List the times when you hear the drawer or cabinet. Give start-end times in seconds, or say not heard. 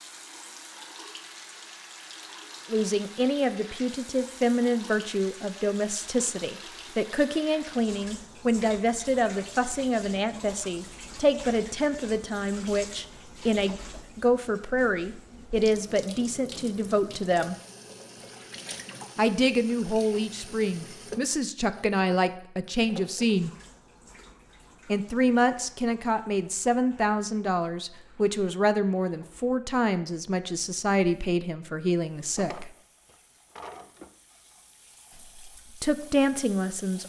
32.1-34.1.